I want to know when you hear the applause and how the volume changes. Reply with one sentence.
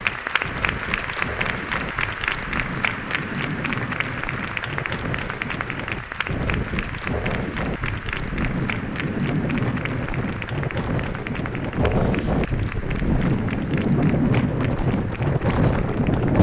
You can hear the applause from 0.0 to 16.3 s, getting quieter.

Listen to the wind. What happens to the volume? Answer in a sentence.
The loudness of the wind goes up.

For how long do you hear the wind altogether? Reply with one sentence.
The wind can be heard for 16 seconds in total.